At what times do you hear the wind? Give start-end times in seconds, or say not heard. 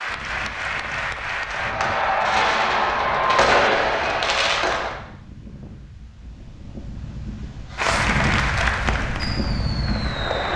0.0-10.5.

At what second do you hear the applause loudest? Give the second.
8 s.